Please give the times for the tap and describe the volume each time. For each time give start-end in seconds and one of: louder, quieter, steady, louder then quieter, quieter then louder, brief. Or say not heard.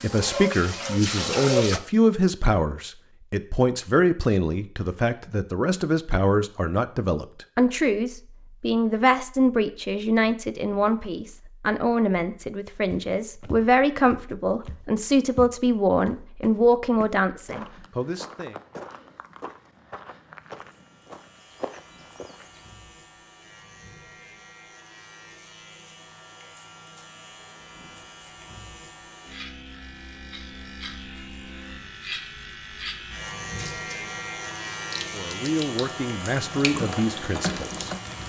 0.0-1.8 brief
33.5-38.2 louder.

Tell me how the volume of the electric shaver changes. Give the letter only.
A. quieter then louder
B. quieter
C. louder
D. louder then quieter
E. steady
C.